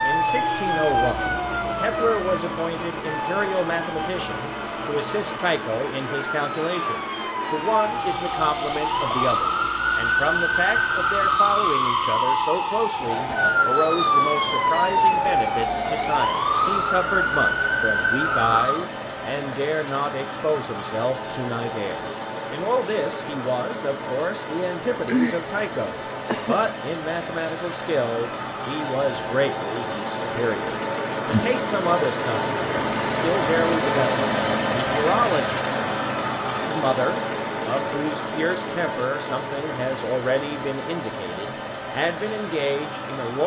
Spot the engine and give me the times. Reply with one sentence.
The engine can be heard from 0.0 to 43.4 s.